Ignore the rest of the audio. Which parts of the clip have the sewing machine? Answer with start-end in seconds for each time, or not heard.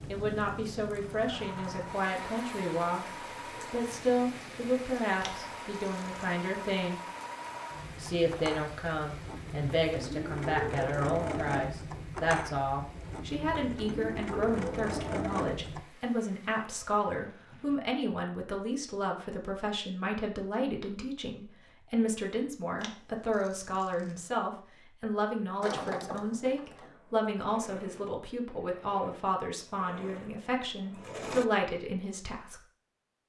0.0-15.8, 25.6-31.4.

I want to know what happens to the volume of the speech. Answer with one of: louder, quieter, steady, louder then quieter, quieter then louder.
steady.